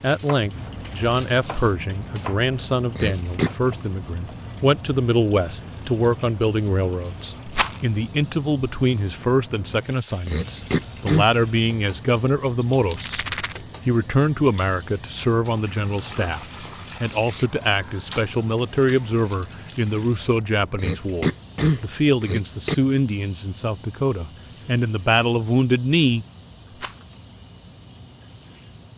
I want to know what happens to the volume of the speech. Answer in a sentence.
The loudness of the speech stays about the same.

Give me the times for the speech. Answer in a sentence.
You can hear the speech from 0.0 to 13.2 s and from 13.8 to 26.2 s.